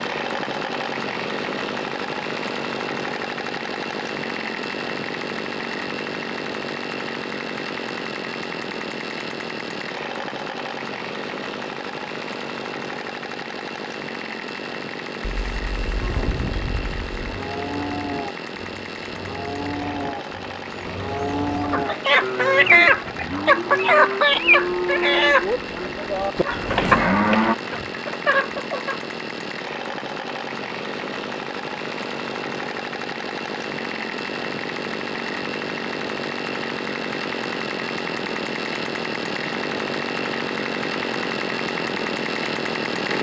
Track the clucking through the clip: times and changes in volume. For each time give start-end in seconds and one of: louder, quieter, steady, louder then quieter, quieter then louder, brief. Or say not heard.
21.6-29.1 quieter.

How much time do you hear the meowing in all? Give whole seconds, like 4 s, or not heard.
2 s.